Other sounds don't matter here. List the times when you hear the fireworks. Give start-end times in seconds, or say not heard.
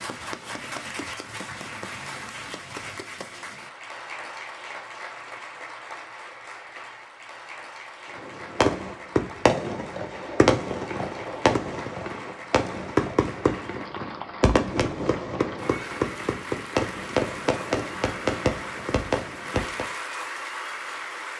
8.2-19.9.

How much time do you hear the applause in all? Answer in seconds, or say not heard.
21 s.